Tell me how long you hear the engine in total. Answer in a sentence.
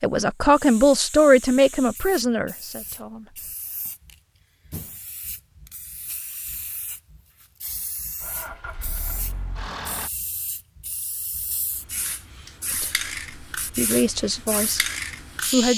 The engine can be heard for 2 seconds in total.